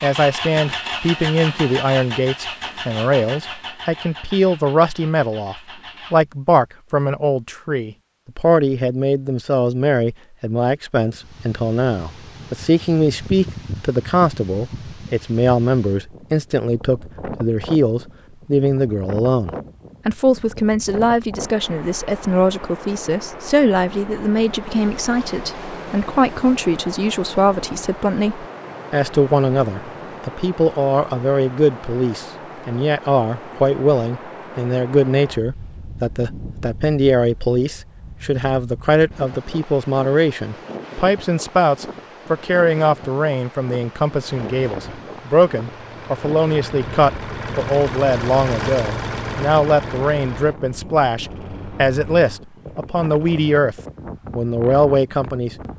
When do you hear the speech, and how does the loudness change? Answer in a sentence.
You can hear the speech from 0.0 to 53.8 s, at a steady volume; and briefly from 54.4 to 55.5 s.